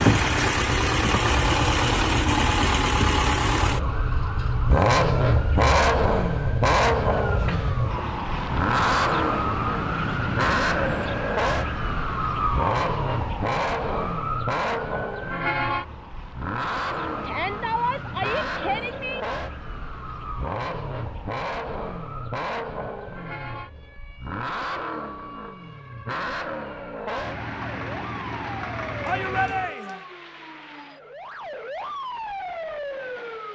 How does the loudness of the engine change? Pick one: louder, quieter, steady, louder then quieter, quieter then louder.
quieter.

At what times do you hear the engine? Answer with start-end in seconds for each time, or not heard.
0.0-29.8.